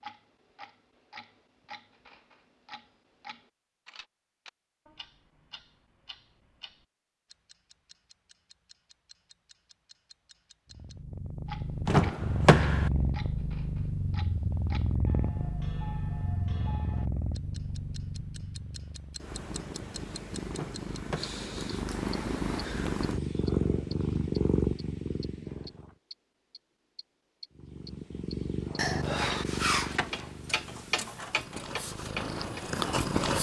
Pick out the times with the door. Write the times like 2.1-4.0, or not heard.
11.8-12.9, 20.5-21.4.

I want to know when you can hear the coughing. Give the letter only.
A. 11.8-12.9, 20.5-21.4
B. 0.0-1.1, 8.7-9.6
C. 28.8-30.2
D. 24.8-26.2
C.